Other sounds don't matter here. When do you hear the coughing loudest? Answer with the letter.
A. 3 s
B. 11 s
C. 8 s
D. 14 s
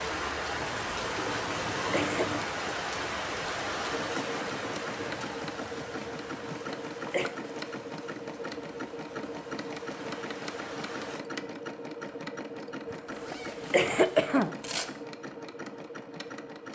D.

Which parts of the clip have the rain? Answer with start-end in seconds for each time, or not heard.
0.0-11.2.